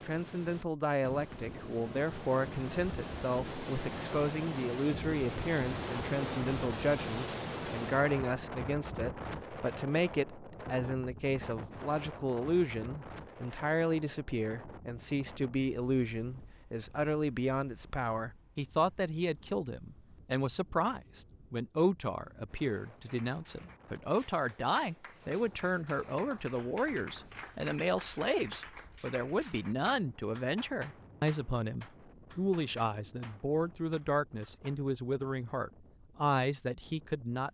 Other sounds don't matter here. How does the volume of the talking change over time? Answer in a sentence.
The volume of the talking stays about the same.